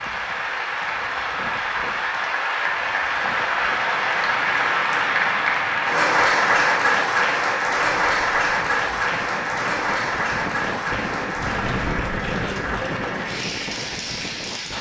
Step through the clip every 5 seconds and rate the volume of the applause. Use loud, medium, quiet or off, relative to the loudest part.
loud, loud, medium.